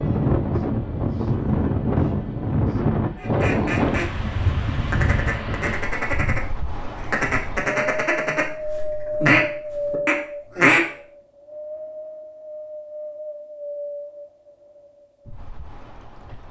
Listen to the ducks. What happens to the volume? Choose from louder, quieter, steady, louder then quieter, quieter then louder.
louder.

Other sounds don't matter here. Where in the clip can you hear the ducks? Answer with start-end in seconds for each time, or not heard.
3.1-10.8.